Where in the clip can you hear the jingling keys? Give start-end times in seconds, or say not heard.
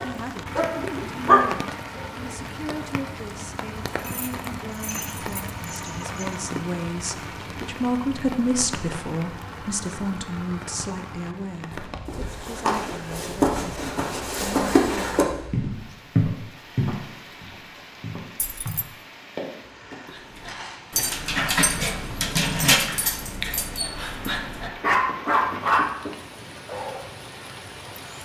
3.9-6.4, 18.4-18.9.